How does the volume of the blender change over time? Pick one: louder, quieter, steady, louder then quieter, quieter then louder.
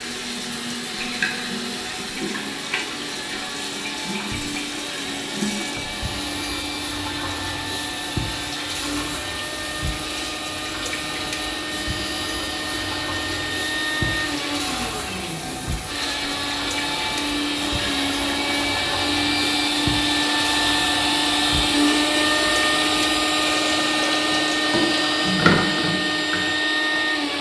louder.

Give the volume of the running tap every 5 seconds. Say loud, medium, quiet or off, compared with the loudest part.
medium, medium, medium, medium, medium, loud.